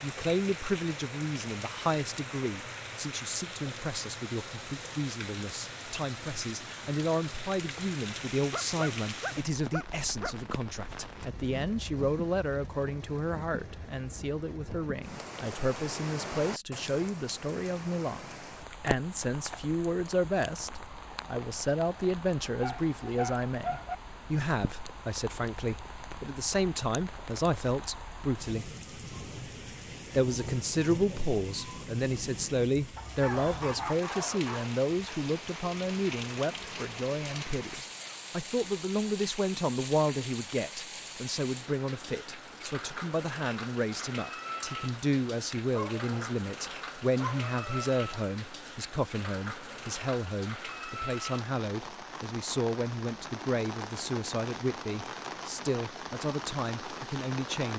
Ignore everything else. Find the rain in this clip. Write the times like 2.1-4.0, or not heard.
0.0-57.7.